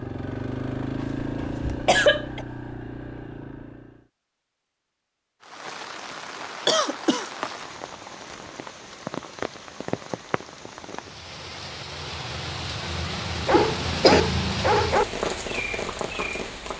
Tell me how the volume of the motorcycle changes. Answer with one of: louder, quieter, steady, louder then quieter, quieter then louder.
quieter.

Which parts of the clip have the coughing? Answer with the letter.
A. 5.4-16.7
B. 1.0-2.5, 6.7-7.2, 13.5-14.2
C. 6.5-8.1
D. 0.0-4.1
B.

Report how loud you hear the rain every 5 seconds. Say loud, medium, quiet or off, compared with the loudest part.
off, medium, loud, loud.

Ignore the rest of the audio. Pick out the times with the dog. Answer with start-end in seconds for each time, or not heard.
13.4-15.1.